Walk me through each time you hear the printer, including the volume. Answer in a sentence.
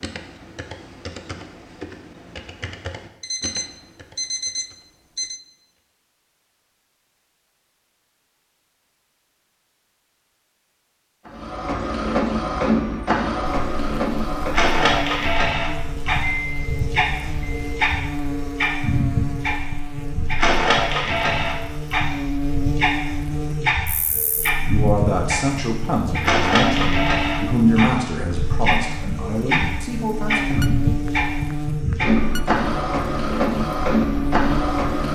You can hear the printer from 11.2 to 35.0 s, at a steady volume.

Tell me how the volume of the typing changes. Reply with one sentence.
The volume of the typing goes down.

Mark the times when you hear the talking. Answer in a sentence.
You can hear the talking from 24.6 to 30.6 s.